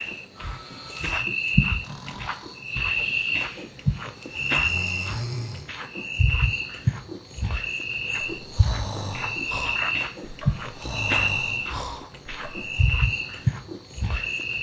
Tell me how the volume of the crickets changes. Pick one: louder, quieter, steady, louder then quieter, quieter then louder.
steady.